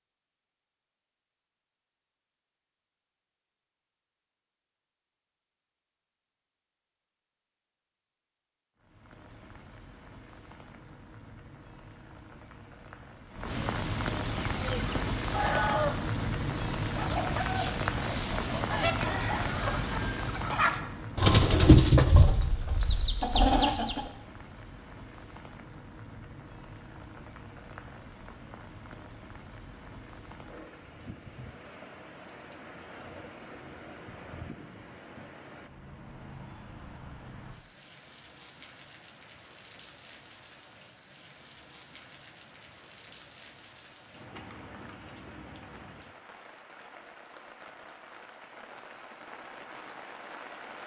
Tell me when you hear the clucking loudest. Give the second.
22 s.